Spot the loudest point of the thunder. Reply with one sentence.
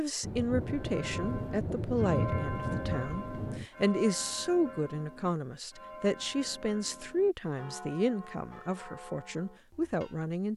The volume of the thunder peaks at 2 seconds.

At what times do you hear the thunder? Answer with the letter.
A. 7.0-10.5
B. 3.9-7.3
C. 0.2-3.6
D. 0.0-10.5
C.